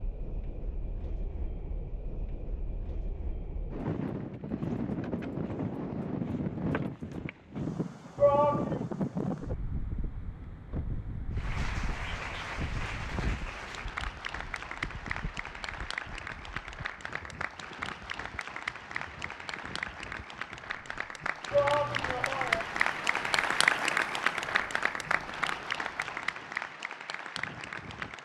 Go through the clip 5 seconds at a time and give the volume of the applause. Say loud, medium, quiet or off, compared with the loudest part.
off, off, medium, medium, loud, medium.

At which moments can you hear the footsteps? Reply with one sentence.
The footsteps can't be heard in this clip.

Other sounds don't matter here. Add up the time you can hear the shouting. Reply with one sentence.
The shouting can be heard for 2 seconds in total.